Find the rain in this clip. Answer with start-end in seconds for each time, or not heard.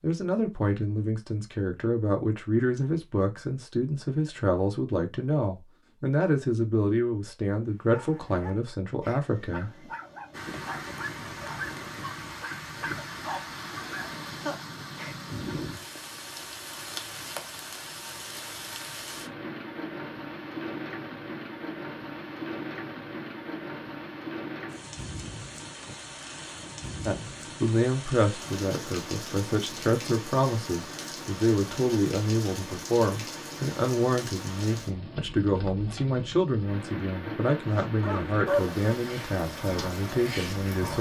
10.3-40.9.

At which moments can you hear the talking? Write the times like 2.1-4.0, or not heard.
0.0-9.9, 27.1-40.9.